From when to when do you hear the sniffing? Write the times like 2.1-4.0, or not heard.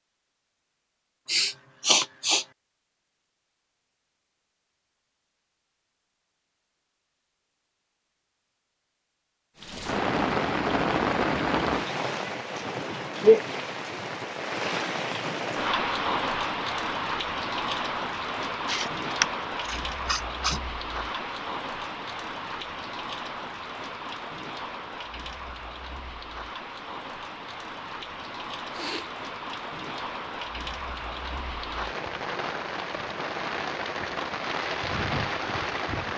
1.2-2.5, 18.6-20.6, 28.7-29.1.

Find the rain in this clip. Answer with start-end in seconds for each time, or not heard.
9.6-36.1.